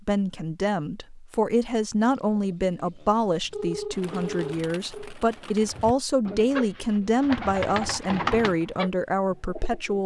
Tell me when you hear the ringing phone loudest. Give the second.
4 s.